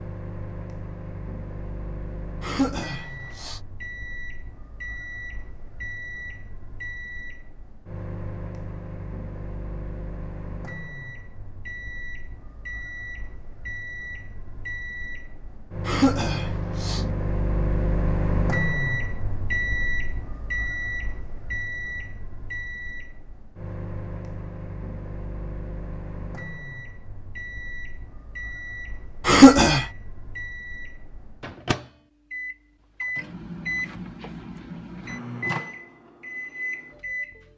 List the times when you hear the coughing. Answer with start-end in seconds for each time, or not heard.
2.4-3.6, 15.8-17.1, 29.2-29.9.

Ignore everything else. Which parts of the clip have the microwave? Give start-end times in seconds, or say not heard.
0.0-37.5.